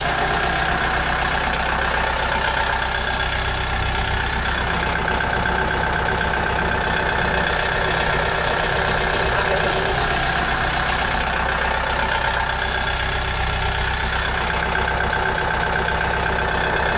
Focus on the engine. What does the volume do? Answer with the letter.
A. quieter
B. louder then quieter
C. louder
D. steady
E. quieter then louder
D.